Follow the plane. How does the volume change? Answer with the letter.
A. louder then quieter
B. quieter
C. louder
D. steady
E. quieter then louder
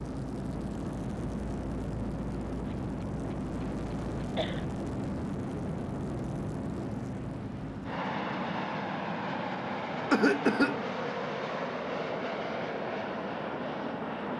D.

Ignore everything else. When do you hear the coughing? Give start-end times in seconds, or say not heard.
2.7-4.7, 10.1-10.8.